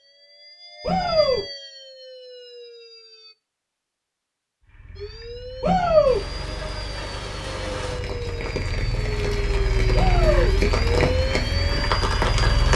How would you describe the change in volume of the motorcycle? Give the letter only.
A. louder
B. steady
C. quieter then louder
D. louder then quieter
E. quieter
D.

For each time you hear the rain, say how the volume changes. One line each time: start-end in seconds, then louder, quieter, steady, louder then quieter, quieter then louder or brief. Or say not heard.
6.0-12.7 louder.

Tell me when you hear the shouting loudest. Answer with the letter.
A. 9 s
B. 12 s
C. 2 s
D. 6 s
D.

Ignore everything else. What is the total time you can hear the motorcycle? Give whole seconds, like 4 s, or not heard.
8 s.